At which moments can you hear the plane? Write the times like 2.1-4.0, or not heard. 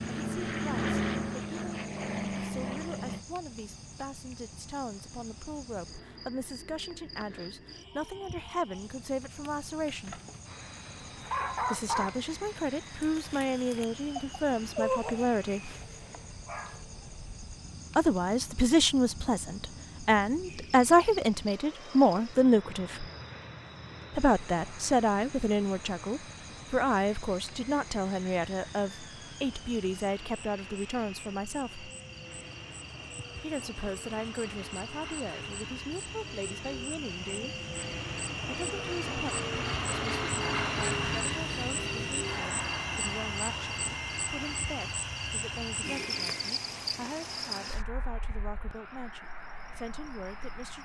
0.0-3.2, 10.4-50.8.